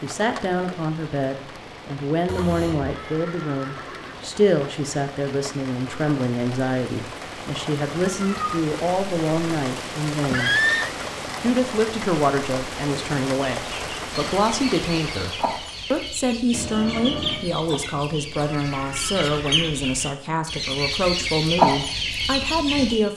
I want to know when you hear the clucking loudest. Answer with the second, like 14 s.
22 s.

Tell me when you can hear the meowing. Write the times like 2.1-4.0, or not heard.
2.2-3.0, 8.1-8.6, 16.5-17.4.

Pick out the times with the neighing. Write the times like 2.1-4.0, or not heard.
2.8-4.2, 10.2-10.9, 18.4-19.8.